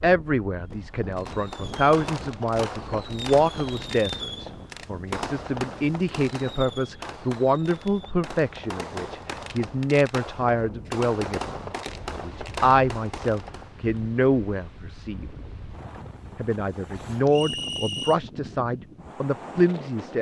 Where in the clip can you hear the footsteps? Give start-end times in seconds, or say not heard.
not heard.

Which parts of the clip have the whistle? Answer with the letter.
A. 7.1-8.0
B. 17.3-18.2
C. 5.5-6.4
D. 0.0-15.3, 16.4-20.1
B.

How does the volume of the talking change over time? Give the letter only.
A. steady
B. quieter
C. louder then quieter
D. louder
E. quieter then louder
A.